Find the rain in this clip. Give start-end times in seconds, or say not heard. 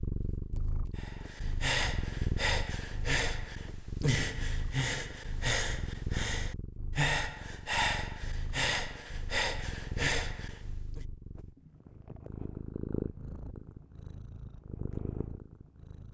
not heard.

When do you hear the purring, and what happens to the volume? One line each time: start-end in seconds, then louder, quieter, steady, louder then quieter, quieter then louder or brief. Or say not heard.
0.0-16.0 quieter then louder.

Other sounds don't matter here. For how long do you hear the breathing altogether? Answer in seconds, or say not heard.
10 s.